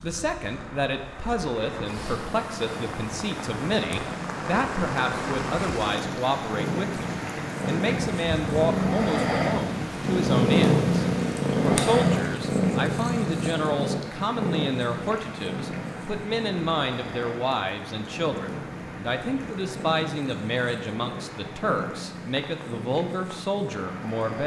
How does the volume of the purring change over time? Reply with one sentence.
The loudness of the purring goes up, then down.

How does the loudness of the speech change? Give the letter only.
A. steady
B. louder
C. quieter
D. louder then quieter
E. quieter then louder
A.